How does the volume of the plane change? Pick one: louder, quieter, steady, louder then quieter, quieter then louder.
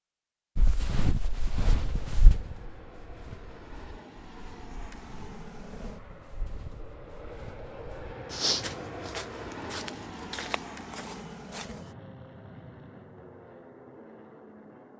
louder then quieter.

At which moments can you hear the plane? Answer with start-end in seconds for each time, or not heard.
1.7-14.9.